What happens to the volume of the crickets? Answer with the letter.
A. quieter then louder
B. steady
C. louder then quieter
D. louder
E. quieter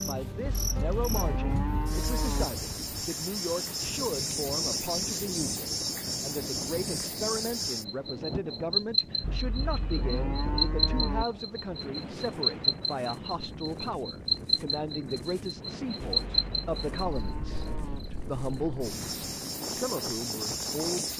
C.